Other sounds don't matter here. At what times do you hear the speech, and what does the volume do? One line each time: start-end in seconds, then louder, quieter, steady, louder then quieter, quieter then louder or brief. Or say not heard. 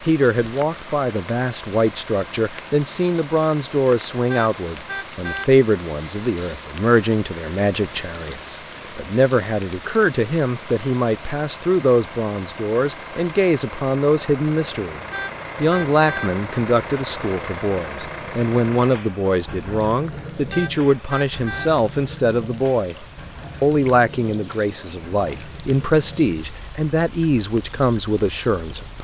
0.0-15.0 steady
15.6-28.9 steady.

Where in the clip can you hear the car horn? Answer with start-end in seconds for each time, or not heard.
4.3-5.5, 15.1-16.3, 20.5-21.7.